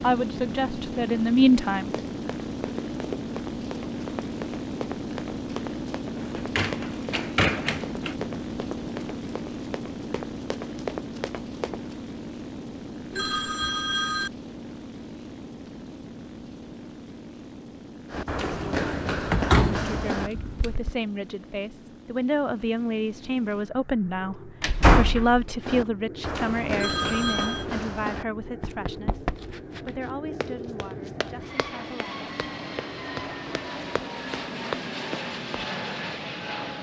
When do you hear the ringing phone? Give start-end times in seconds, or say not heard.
13.1-14.3, 26.8-27.6.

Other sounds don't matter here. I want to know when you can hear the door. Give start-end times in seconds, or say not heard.
6.3-8.2, 19.3-20.8, 24.6-25.4.